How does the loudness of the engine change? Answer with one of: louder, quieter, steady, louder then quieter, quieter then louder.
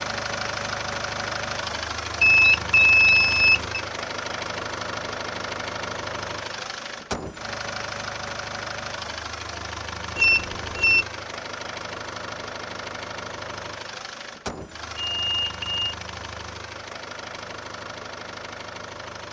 quieter.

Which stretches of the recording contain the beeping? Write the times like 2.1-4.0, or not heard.
2.2-3.8, 10.2-11.1, 15.1-15.8.